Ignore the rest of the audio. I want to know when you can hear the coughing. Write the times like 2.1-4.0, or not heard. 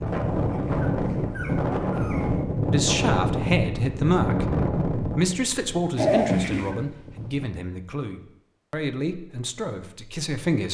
not heard.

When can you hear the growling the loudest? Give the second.
6 s.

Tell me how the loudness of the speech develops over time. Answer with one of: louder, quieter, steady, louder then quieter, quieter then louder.
quieter.